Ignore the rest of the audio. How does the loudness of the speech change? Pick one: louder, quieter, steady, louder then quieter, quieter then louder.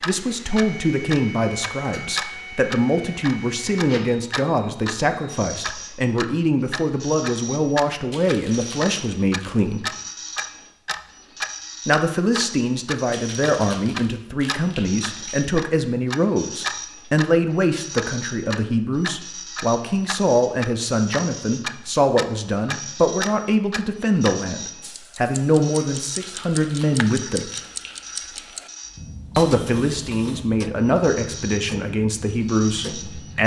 steady.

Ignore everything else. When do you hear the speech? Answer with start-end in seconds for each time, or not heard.
0.1-9.8, 11.8-27.5, 29.4-33.4.